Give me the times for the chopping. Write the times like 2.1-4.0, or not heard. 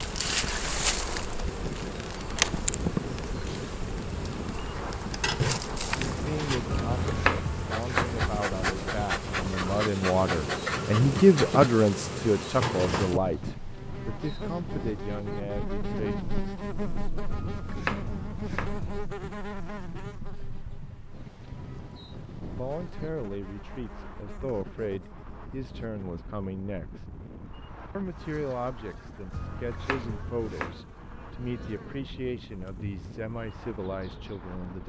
6.7-8.4, 17.3-19.1, 29.3-30.9.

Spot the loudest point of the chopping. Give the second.
7 s.